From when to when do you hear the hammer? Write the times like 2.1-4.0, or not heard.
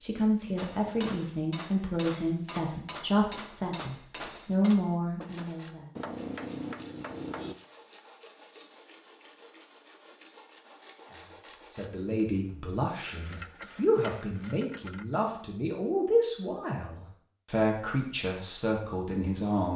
0.6-7.5.